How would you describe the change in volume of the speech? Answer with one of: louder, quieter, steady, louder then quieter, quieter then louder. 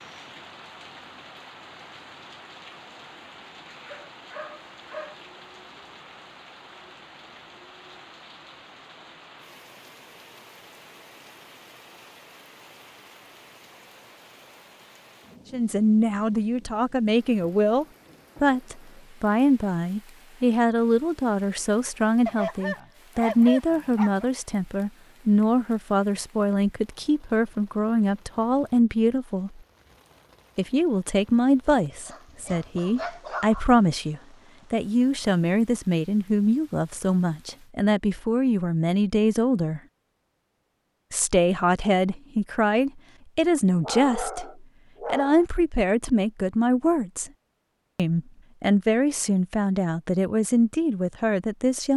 steady.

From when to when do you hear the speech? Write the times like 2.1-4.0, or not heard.
15.5-29.6, 30.6-39.8, 41.1-47.3, 48.0-51.9.